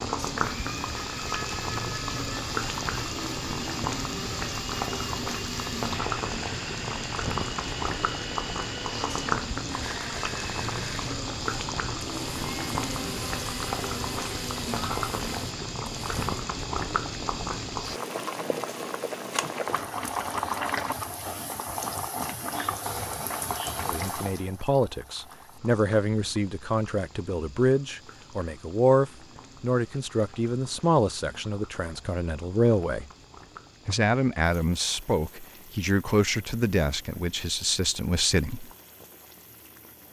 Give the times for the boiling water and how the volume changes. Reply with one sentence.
You can hear the boiling water from 0.0 to 40.0 s, getting quieter.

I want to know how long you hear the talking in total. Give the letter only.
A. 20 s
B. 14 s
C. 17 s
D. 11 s
B.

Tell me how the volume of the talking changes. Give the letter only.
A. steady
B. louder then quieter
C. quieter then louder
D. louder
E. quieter
A.